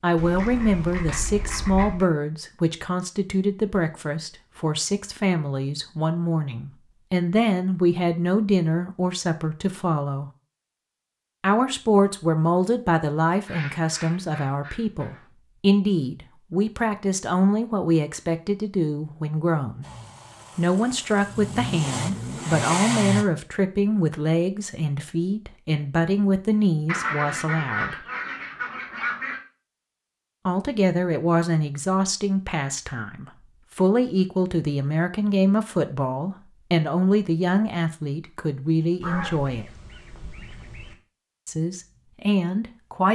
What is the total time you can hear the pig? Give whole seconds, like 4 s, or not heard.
not heard.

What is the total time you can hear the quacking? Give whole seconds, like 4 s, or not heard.
8 s.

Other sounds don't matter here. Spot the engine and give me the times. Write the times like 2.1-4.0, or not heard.
19.8-23.2.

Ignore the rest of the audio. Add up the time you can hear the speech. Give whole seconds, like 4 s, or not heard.
37 s.